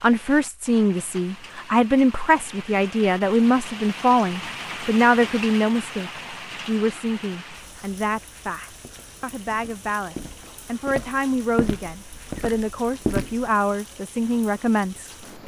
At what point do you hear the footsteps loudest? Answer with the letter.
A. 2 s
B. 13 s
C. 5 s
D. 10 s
B.